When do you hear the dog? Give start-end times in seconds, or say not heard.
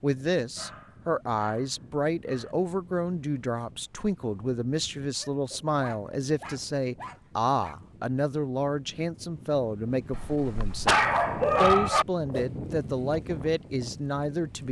0.6-2.5, 5.2-7.8, 10.1-12.1.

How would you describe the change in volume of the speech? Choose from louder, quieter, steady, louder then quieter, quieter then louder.
steady.